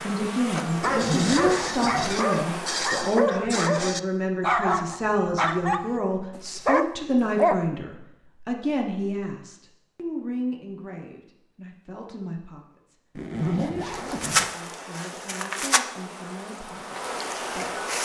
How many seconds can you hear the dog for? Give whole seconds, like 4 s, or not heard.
7 s.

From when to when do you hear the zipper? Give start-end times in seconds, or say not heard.
0.8-2.2, 13.2-14.5.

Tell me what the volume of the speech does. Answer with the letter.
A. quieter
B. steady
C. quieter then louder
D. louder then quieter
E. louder
A.